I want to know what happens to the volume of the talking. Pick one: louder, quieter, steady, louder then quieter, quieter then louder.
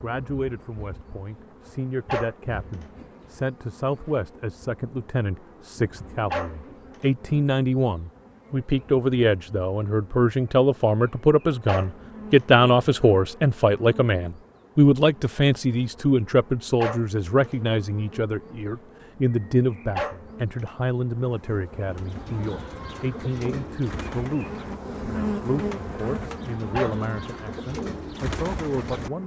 louder then quieter.